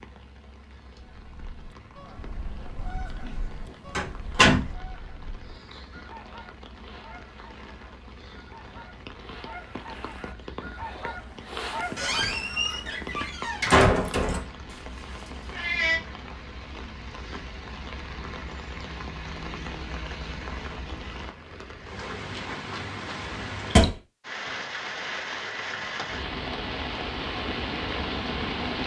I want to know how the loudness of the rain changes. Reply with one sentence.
The loudness of the rain goes up.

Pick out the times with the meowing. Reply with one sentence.
The meowing can be heard from 14.7 to 16.0 s.